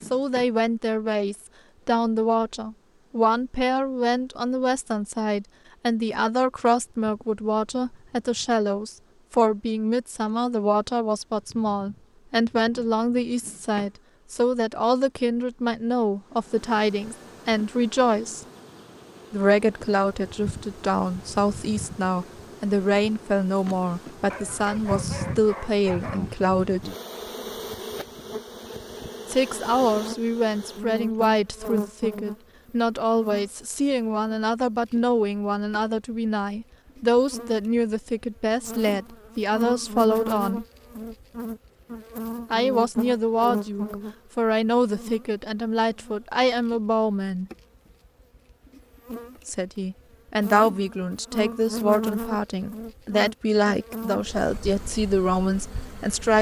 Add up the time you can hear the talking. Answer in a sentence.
You can hear the talking for 49 seconds altogether.